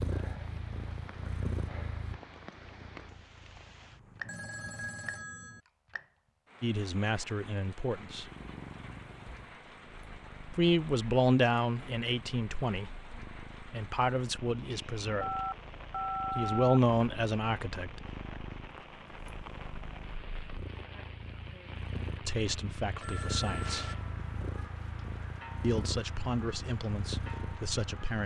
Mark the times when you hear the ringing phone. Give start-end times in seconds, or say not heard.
4.2-5.6, 15.2-16.8, 23.0-23.9.